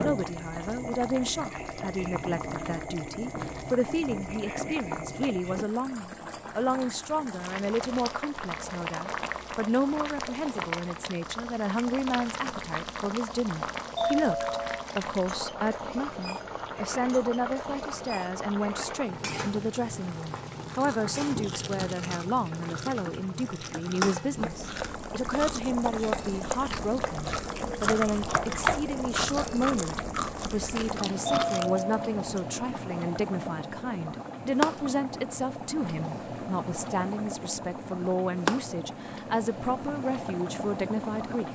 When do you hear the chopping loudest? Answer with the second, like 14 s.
29 s.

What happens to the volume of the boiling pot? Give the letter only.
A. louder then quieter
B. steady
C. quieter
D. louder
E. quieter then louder
B.